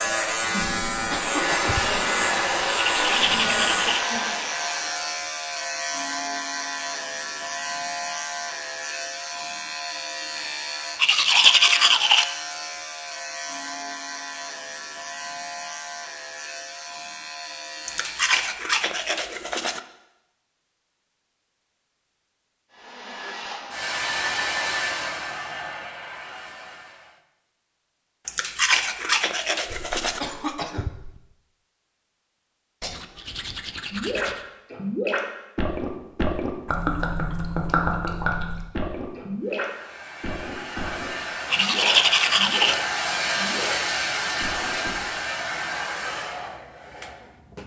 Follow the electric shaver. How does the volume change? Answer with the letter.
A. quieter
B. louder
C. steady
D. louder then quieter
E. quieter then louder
A.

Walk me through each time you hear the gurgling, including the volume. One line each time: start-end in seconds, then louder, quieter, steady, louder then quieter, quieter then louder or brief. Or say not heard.
33.9-43.8 quieter
44.4-44.9 brief.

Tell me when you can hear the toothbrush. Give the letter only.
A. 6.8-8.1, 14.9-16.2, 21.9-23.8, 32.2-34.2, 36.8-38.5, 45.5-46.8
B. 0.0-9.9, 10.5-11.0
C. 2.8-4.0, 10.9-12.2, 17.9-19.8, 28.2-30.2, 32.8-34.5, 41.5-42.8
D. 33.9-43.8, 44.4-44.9
C.